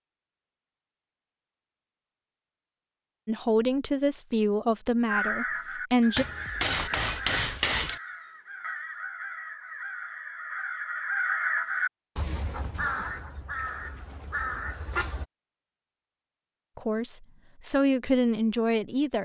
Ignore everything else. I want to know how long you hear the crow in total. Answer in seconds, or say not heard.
10 s.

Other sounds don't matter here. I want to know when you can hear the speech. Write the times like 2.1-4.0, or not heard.
3.2-6.2, 16.8-19.2.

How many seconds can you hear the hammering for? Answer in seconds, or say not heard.
2 s.